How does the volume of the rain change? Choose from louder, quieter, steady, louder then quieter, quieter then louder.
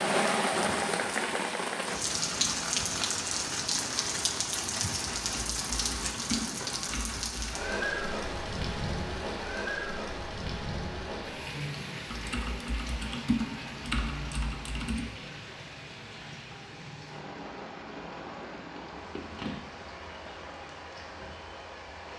quieter.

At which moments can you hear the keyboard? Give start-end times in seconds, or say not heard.
5.2-7.6, 12.1-15.1.